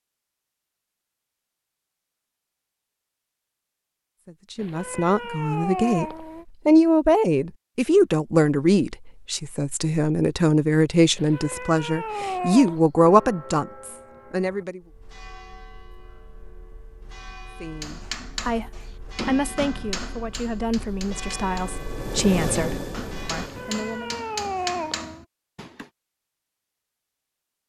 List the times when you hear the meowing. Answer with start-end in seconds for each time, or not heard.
4.5-6.5, 11.2-12.8, 23.4-25.2.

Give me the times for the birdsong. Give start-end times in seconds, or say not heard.
not heard.